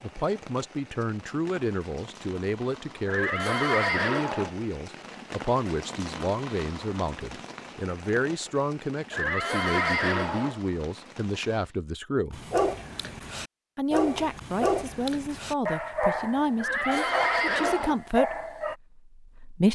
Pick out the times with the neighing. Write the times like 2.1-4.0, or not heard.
3.0-4.5, 9.1-10.6, 16.6-17.9.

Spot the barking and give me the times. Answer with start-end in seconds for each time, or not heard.
12.3-18.8.